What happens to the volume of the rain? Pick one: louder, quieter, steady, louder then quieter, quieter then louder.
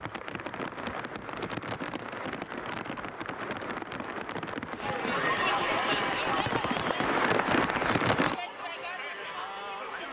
louder.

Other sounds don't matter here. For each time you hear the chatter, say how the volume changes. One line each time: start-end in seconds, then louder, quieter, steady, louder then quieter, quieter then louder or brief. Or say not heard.
4.7-10.0 quieter.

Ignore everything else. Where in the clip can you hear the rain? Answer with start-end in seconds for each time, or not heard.
0.0-8.3.